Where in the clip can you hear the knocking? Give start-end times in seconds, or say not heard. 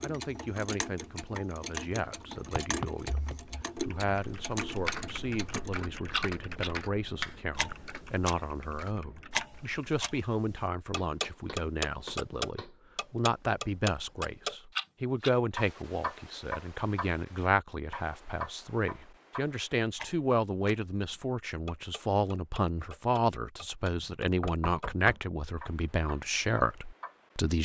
2.4-3.4, 10.9-12.8, 23.9-25.2.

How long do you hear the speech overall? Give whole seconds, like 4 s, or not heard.
27 s.